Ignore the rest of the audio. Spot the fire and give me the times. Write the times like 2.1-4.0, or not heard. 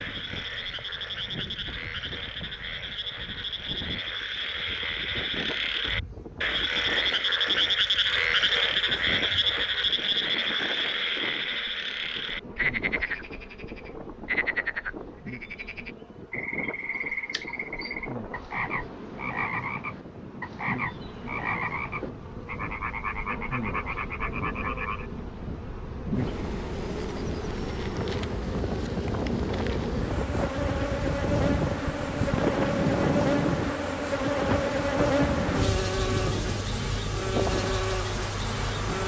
not heard.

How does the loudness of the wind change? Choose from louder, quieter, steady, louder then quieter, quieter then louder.
louder.